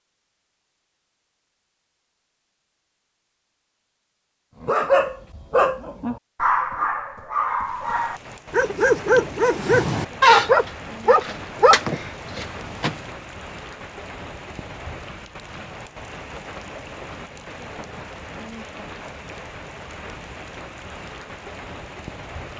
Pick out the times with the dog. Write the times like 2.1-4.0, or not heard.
4.7-13.0.